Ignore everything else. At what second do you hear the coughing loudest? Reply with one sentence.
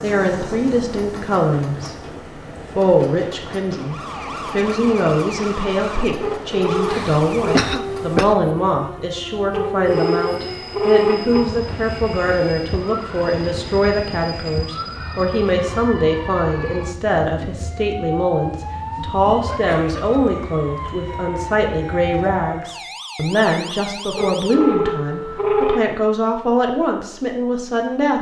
The volume of the coughing peaks at 8 seconds.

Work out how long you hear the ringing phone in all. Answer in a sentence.
You can hear the ringing phone for 5 seconds altogether.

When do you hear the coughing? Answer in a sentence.
You can hear the coughing from 6.8 to 8.3 s and from 19.4 to 20.1 s.